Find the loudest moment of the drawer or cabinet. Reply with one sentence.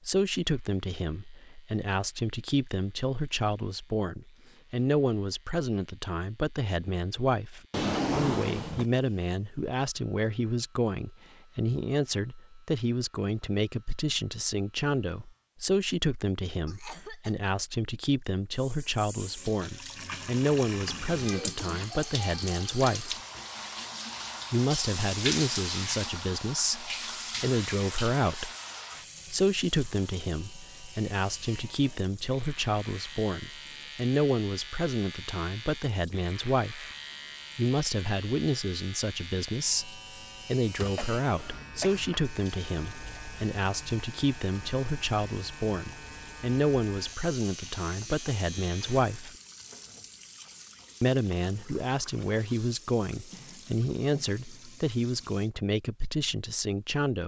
The volume of the drawer or cabinet peaks at 8 seconds.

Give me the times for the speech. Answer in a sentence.
You can hear the speech from 0.1 to 23.2 s, from 24.5 to 28.5 s, from 29.3 to 36.9 s, from 37.5 to 49.4 s and from 51.0 to 57.2 s.